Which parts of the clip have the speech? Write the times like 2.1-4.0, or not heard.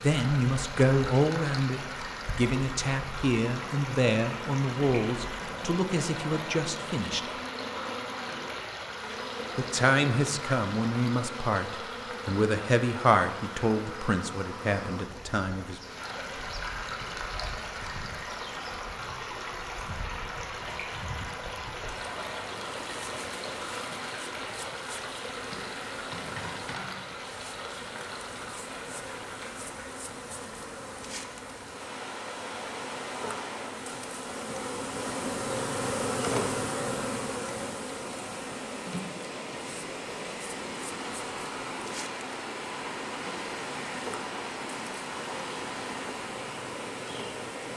0.0-7.3, 9.6-15.8.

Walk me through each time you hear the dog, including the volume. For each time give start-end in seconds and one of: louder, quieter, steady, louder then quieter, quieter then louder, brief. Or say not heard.
not heard.